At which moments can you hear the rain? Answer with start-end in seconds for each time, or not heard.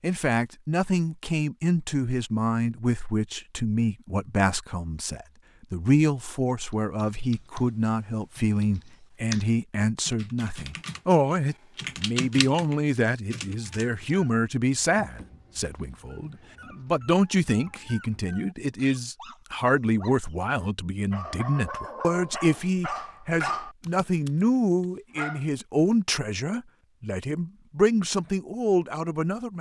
not heard.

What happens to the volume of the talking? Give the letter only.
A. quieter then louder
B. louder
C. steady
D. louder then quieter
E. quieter
C.